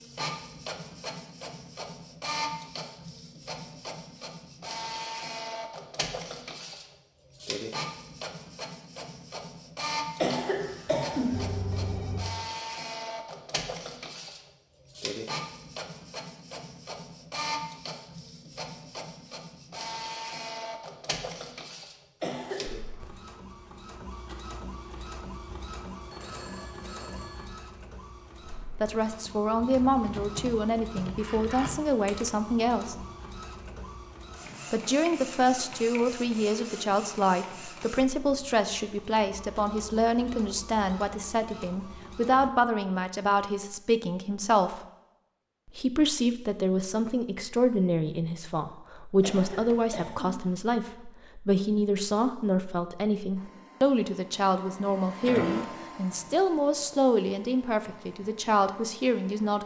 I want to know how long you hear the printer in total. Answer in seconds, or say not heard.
49 s.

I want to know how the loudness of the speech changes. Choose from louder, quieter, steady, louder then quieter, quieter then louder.
steady.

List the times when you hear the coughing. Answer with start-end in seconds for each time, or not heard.
10.2-11.7, 22.2-22.8, 49.2-50.5.